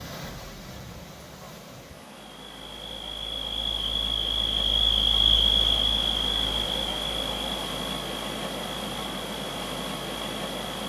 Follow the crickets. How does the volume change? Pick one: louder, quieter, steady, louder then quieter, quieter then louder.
louder then quieter.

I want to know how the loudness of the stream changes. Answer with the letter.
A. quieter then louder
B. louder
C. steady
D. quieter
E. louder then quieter
B.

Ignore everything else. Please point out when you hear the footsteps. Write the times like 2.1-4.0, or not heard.
not heard.